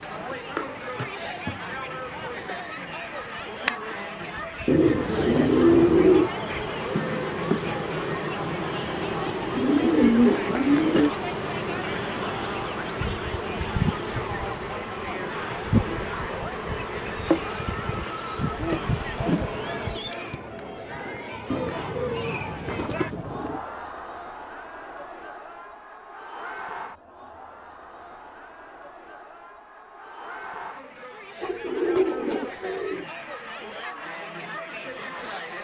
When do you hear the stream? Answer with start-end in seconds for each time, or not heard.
not heard.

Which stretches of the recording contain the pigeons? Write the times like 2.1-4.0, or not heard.
4.7-6.3, 9.6-11.1, 21.5-23.6, 31.4-33.0.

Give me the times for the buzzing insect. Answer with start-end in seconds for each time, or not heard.
0.0-20.1.